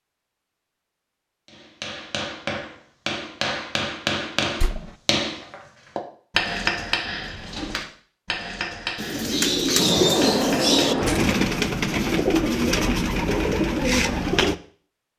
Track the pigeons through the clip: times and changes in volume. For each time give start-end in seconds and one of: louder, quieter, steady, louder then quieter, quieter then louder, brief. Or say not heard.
8.7-14.6 steady.